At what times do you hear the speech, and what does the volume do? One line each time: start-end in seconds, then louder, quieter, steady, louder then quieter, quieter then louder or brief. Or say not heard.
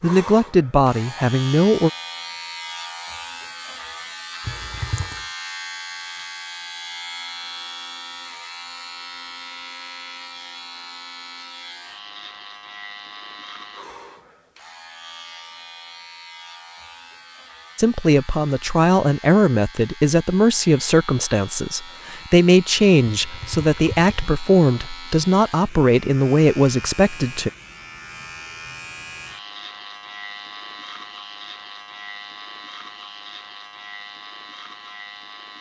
0.0-1.9 brief
17.8-27.5 steady.